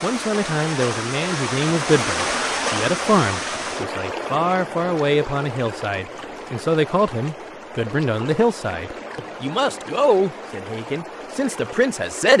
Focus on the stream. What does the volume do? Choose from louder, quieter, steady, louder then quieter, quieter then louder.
quieter.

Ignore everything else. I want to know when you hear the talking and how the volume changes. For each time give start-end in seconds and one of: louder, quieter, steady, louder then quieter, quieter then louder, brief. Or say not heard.
0.0-12.3 steady.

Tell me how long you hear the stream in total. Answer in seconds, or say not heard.
12 s.